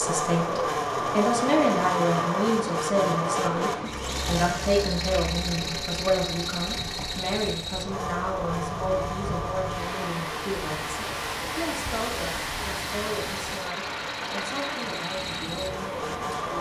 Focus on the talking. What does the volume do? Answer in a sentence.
The volume of the talking goes down.